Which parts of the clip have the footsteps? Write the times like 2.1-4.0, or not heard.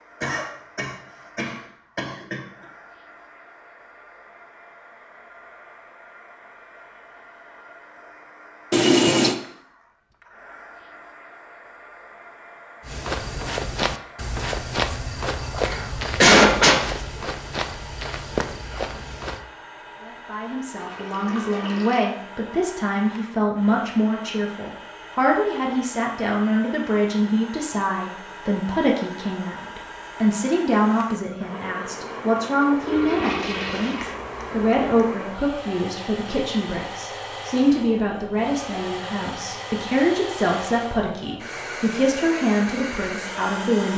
12.8-19.4.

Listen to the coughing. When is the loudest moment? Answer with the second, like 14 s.
16 s.